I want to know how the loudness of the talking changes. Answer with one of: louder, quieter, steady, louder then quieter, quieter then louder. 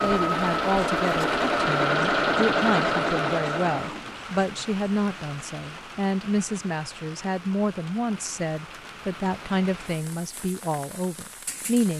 steady.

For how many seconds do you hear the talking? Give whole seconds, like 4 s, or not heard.
12 s.